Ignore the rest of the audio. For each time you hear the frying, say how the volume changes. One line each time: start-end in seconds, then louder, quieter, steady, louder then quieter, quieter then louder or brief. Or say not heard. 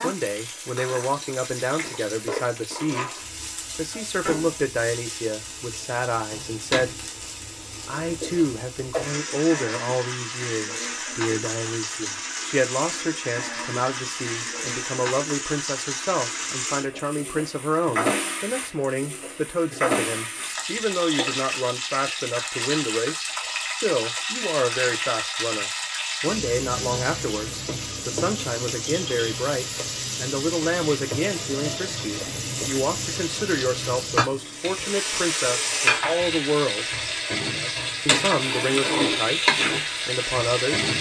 0.0-40.9 louder.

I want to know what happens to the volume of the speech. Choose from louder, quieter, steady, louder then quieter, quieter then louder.
steady.